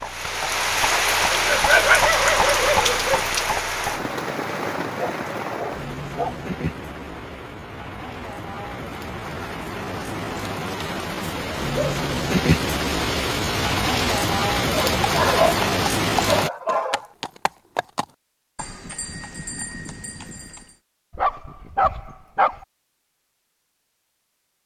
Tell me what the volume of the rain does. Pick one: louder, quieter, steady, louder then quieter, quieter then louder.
quieter then louder.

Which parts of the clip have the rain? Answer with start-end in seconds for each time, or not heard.
0.0-16.5.